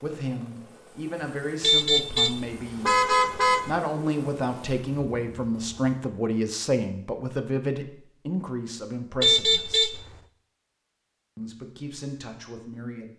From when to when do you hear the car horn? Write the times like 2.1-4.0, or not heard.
1.6-3.8, 9.2-10.2.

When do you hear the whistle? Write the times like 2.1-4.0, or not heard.
not heard.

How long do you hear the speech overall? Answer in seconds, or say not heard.
12 s.